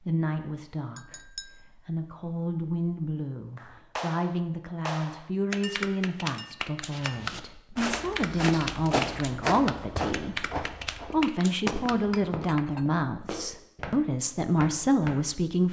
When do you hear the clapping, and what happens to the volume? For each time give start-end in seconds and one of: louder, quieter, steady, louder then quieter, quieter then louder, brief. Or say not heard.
3.5-12.0 steady.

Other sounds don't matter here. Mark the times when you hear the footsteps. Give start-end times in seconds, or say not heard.
6.9-15.2.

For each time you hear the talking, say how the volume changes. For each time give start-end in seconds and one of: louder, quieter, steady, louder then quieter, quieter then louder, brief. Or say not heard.
0.0-15.6 louder.